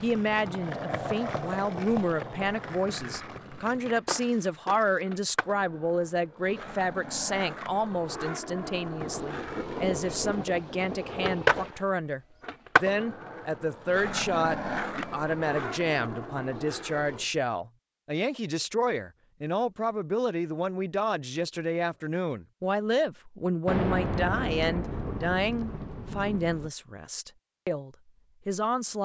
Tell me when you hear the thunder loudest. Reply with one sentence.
The volume of the thunder peaks at 24 seconds.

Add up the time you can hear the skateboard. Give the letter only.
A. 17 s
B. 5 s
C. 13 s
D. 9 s
A.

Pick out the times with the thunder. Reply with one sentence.
You can hear the thunder from 9.0 to 11.8 s and from 23.6 to 26.7 s.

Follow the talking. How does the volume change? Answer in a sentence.
The loudness of the talking stays about the same.